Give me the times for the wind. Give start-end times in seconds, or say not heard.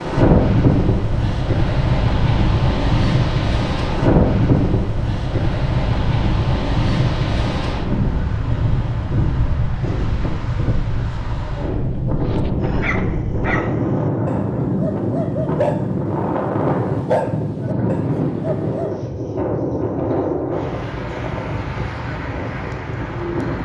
0.0-23.5.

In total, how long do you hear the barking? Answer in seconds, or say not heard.
7 s.